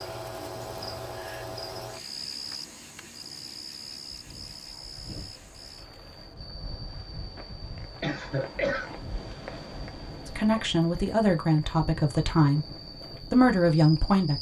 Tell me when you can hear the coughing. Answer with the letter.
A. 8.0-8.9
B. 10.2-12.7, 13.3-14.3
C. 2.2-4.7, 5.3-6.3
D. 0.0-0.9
A.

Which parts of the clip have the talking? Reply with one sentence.
You can hear the talking from 10.2 to 12.7 s and from 13.3 to 14.3 s.